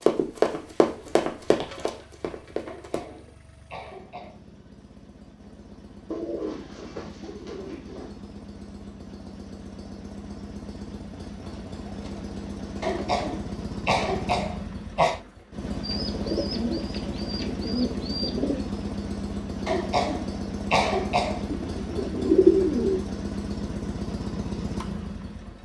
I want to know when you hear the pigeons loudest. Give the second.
22 s.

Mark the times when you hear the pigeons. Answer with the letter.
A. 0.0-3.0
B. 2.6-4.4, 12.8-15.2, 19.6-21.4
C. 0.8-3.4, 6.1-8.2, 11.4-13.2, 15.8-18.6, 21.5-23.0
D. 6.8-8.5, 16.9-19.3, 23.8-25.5
C.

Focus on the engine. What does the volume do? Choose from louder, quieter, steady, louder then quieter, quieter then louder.
louder.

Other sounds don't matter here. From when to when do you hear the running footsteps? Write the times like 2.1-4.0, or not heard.
0.0-3.0.